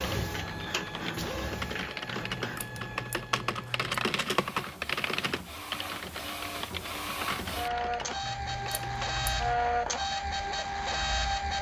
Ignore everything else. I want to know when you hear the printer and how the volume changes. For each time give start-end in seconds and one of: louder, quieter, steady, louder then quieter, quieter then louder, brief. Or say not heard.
0.0-11.5 quieter then louder.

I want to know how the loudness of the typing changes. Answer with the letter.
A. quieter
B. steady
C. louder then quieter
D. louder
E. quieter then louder
C.